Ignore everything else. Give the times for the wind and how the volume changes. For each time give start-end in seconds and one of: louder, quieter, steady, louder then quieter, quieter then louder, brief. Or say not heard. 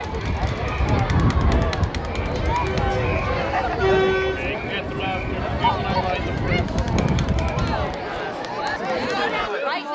0.0-8.1 quieter then louder.